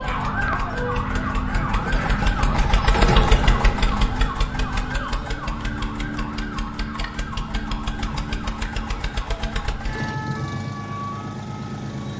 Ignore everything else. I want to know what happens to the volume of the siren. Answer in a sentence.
The loudness of the siren goes down.